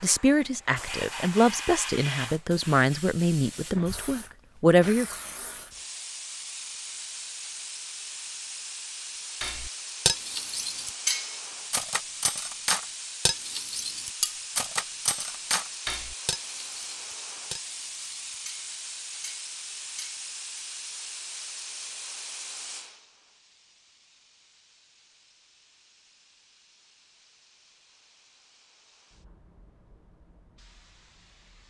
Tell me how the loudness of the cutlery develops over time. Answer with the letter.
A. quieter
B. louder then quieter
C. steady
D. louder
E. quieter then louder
A.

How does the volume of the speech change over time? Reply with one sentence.
The loudness of the speech goes up, then down.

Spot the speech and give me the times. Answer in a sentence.
The speech can be heard from 0.0 to 5.0 s.